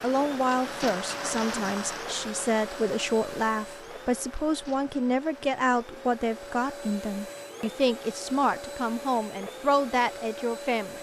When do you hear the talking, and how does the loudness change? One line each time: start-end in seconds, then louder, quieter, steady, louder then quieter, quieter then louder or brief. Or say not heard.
0.0-10.9 steady.